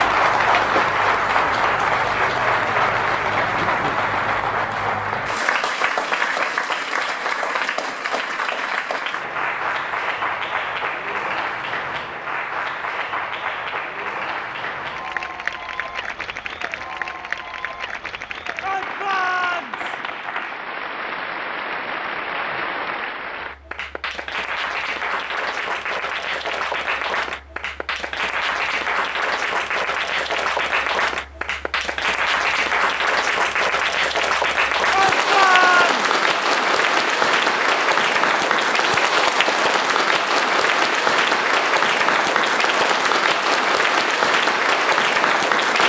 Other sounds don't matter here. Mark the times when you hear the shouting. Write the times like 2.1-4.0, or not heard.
18.6-20.0, 34.9-36.1.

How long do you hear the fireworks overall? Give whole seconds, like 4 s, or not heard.
not heard.